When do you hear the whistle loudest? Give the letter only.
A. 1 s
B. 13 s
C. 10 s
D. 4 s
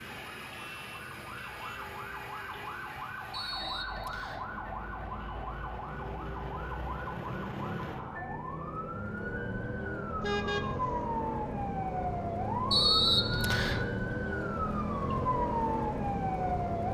B.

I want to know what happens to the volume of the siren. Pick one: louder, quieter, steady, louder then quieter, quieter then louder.
louder.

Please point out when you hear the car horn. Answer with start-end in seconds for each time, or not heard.
0.5-1.9, 10.2-11.1.